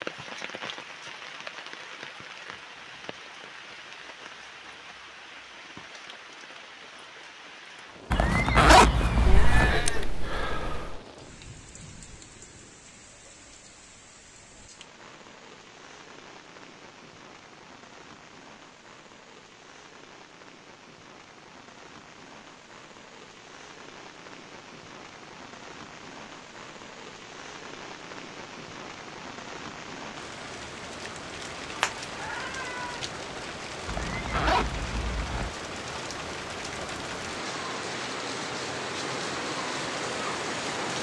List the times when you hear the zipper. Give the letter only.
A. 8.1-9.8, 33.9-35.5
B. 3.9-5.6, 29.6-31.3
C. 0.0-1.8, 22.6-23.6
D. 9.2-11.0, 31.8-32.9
A.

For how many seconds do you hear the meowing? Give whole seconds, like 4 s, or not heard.
3 s.